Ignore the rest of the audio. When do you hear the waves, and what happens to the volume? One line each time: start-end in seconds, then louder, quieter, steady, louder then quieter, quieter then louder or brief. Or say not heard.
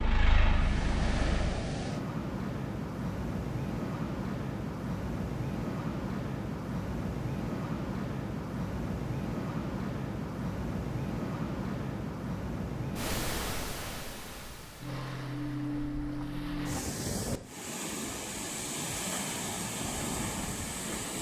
0.0-21.1 steady.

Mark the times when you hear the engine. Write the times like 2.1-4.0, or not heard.
0.0-1.6.